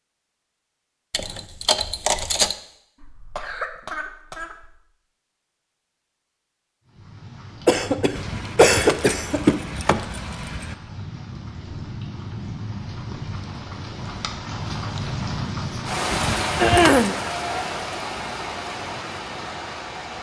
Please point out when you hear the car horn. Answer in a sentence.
The car horn can't be heard in this clip.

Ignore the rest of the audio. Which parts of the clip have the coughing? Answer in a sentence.
You can hear the coughing from 3.0 to 4.8 s, from 7.7 to 9.4 s and from 16.6 to 17.1 s.